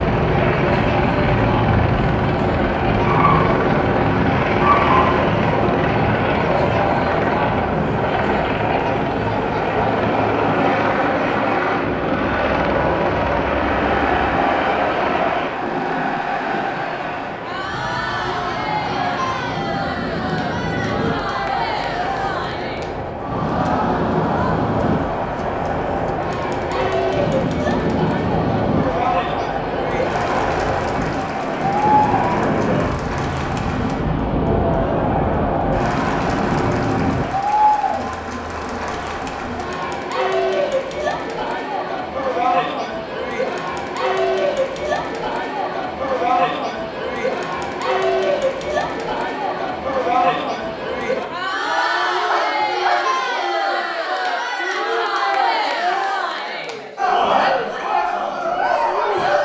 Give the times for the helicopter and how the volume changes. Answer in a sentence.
The helicopter can be heard from 0.0 to 15.7 s, at a steady volume.